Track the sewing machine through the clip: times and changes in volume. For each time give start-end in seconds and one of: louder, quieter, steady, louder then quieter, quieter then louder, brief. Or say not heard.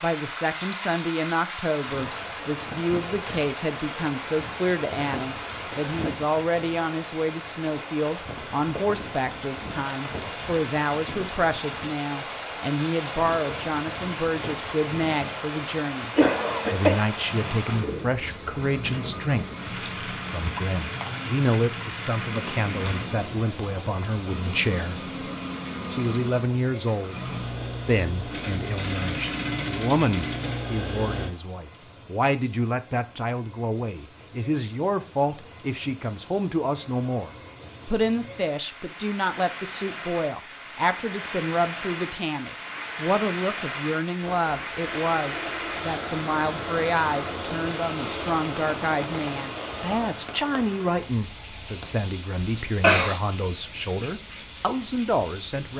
16.3-31.4 louder
44.2-50.1 steady.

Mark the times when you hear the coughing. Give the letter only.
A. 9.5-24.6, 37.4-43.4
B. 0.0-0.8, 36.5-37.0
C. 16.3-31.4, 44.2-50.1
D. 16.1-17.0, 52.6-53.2
D.